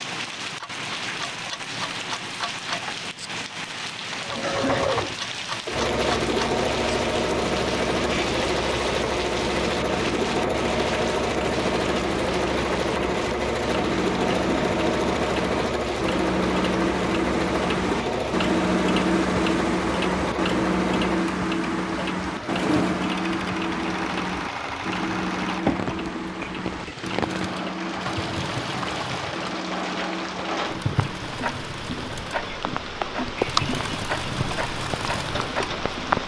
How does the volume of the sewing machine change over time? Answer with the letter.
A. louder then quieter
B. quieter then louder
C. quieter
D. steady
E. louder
C.